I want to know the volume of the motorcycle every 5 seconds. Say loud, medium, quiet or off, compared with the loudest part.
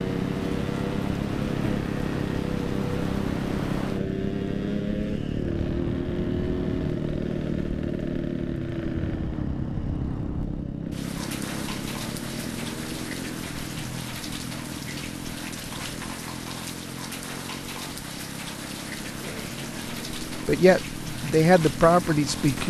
loud, loud, medium, medium, medium.